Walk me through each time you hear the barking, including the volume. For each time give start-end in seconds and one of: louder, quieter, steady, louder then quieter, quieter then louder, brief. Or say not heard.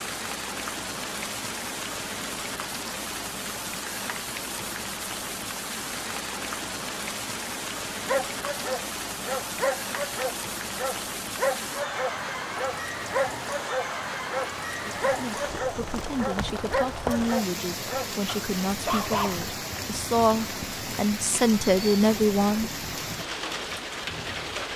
8.1-19.4 steady.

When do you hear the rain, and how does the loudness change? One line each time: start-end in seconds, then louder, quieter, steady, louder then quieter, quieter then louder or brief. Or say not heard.
0.0-24.7 steady.